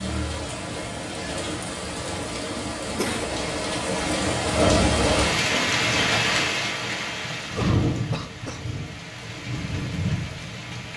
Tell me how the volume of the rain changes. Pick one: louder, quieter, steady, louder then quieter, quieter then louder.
louder then quieter.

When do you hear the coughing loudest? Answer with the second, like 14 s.
3 s.